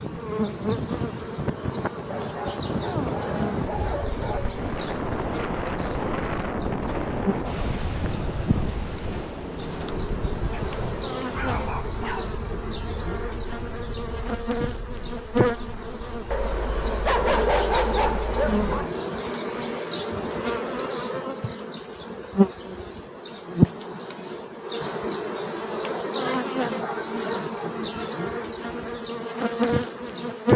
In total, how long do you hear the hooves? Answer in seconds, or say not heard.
not heard.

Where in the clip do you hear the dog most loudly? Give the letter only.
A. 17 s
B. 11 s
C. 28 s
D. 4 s
A.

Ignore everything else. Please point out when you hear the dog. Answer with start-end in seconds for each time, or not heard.
2.1-4.5, 10.5-12.3, 16.3-18.9, 26.1-28.1.